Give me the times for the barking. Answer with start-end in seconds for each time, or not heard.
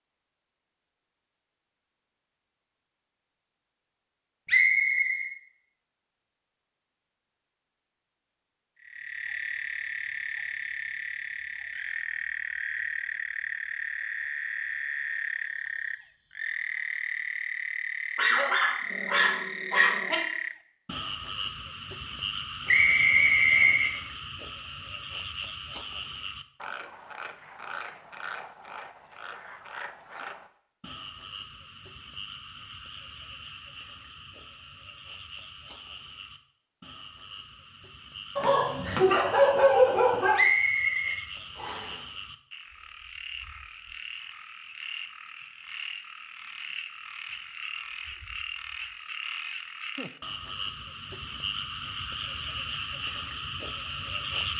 18.1-20.1, 38.4-40.4.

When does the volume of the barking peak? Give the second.
40 s.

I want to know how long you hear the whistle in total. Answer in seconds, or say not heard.
4 s.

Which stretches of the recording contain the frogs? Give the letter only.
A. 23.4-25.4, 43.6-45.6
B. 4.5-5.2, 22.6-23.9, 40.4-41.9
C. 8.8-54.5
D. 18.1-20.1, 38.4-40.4
C.